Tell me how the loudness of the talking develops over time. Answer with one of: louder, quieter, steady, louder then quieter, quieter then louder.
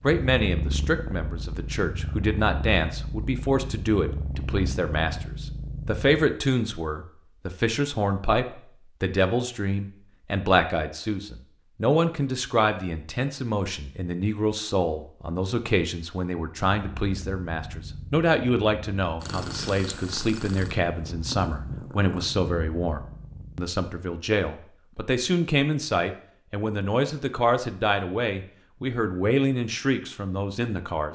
steady.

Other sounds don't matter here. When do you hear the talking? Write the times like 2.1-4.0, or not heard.
0.0-31.0.